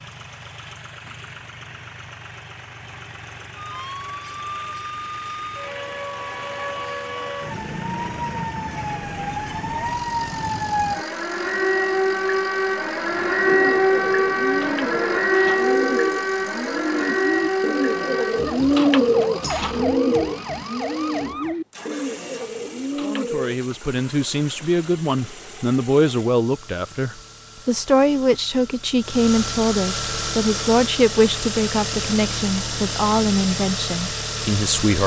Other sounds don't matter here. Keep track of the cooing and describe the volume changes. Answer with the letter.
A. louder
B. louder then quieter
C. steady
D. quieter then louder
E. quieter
B.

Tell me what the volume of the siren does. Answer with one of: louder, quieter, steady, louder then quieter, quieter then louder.
louder then quieter.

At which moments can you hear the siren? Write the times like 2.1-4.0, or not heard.
3.5-21.6.